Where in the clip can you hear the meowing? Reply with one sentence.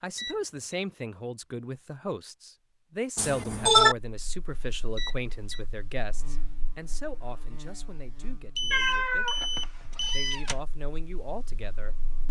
You can hear the meowing from 3.1 to 4.0 s and from 8.7 to 10.6 s.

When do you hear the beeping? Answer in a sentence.
You can hear the beeping from 0.1 to 0.8 s, from 5.0 to 5.6 s and from 8.6 to 10.4 s.